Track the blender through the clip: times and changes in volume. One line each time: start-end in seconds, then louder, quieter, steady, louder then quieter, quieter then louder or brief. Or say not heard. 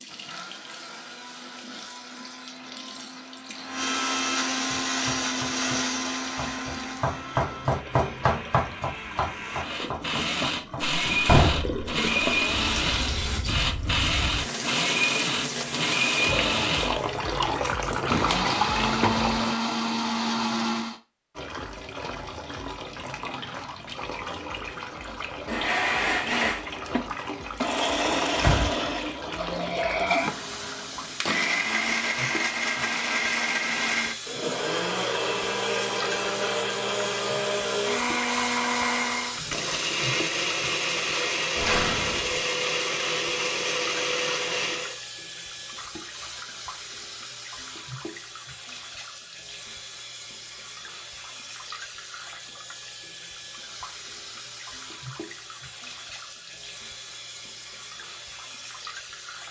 0.0-21.0 louder
25.1-45.0 steady.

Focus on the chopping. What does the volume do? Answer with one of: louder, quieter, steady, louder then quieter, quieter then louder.
louder then quieter.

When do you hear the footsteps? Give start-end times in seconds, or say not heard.
not heard.